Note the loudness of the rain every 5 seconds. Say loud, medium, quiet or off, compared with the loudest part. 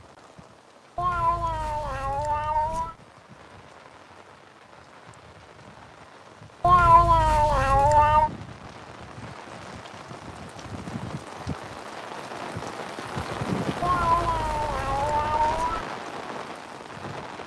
quiet, medium, loud, loud.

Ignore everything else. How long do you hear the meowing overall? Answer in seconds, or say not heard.
6 s.